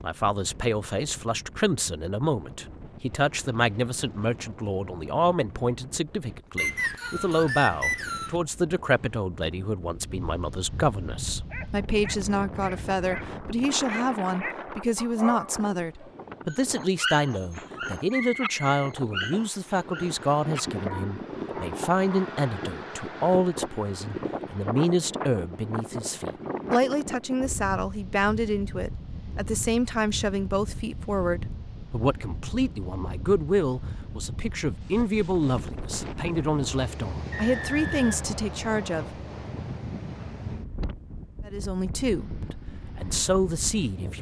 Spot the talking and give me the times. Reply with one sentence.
The talking can be heard from 0.0 to 39.0 s and from 41.5 to 44.1 s.